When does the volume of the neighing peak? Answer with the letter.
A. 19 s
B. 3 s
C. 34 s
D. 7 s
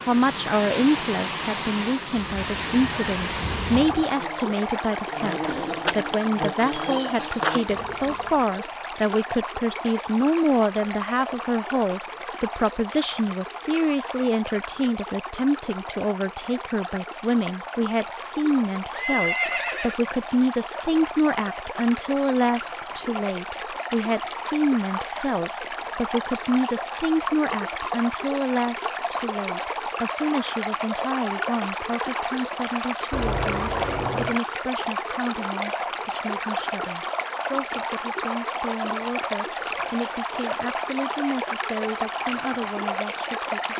A.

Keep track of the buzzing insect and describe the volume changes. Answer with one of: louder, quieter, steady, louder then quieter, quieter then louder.
louder.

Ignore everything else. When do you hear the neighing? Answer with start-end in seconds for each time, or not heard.
2.1-4.0, 18.9-19.9, 33.1-34.4.